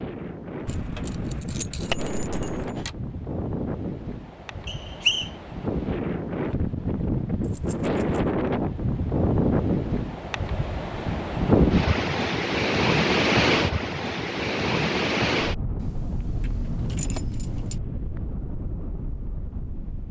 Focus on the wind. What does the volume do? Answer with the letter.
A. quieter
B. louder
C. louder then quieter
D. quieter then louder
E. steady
C.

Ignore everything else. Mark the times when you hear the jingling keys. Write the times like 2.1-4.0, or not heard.
0.7-2.9, 7.4-8.2, 15.8-17.8.